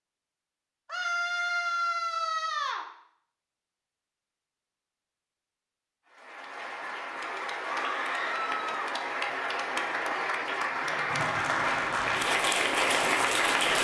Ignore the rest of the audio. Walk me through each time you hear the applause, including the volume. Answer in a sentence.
The applause can be heard from 6.1 to 13.7 s, getting louder.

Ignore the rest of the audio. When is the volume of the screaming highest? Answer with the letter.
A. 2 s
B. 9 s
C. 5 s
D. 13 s
A.